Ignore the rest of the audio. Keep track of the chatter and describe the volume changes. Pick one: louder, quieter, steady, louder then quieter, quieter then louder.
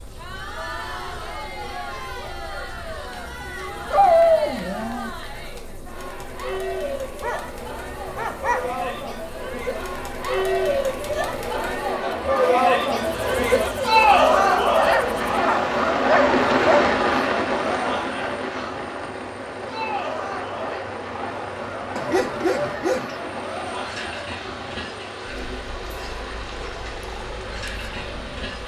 louder then quieter.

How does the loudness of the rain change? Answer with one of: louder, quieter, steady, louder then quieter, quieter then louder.
quieter.